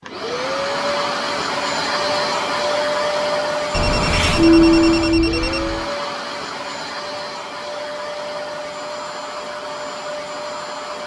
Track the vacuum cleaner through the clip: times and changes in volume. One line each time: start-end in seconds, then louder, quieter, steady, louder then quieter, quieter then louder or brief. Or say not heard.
0.0-11.0 quieter.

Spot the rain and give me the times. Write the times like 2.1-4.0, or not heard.
not heard.